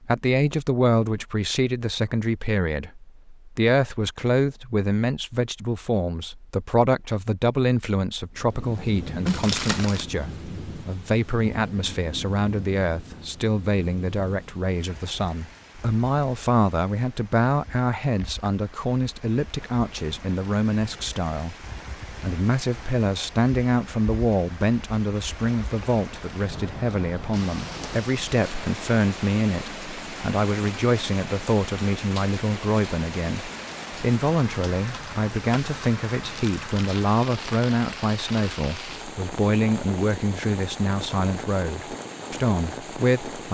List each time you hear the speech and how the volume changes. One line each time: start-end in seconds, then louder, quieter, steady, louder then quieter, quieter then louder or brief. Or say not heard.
0.0-43.5 steady.